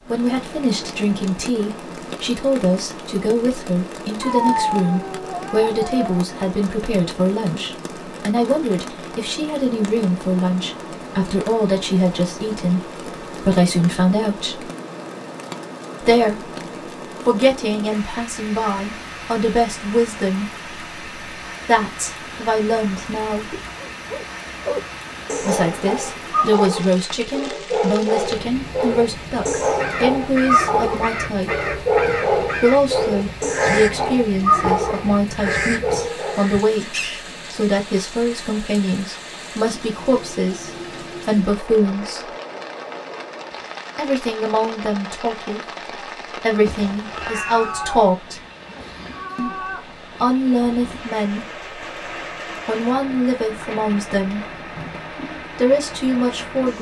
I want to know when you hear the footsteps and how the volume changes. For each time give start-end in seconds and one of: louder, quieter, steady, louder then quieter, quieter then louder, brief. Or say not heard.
not heard.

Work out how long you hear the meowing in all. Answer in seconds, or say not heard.
4 s.